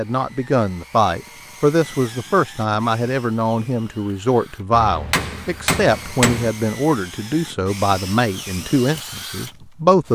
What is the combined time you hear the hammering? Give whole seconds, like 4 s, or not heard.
2 s.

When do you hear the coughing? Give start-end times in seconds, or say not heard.
not heard.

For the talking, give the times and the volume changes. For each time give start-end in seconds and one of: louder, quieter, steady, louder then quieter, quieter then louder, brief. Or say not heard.
0.0-10.1 steady.